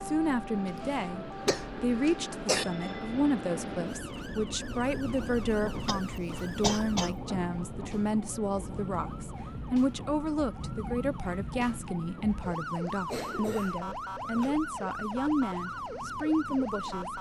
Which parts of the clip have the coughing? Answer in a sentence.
You can hear the coughing from 0.7 to 2.6 s, from 5.8 to 7.2 s and from 13.1 to 14.6 s.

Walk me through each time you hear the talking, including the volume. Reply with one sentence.
The talking can be heard from 0.0 to 17.1 s, at a steady volume.